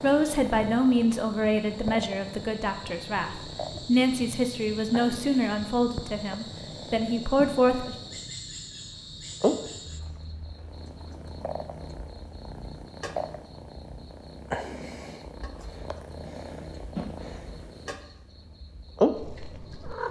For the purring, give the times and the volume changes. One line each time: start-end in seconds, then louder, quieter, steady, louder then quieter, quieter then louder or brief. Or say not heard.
0.0-8.3 steady
9.4-18.1 louder
18.9-20.0 brief.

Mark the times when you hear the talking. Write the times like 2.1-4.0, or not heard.
0.0-8.0.